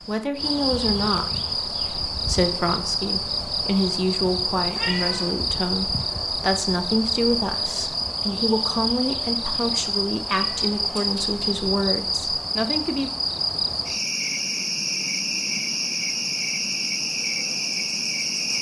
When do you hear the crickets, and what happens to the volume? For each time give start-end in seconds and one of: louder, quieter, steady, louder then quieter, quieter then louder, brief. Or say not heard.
0.0-18.5 steady.